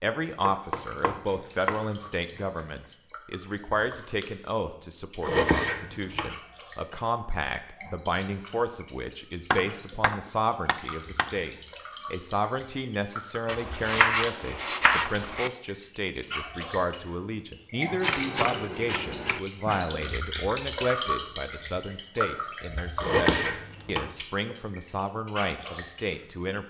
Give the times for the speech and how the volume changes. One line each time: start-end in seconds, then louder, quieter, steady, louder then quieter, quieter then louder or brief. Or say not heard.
0.0-26.6 steady.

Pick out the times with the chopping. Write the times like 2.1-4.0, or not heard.
0.5-1.9, 5.2-6.3, 9.5-11.3, 13.4-15.5, 18.0-19.4, 23.0-24.1.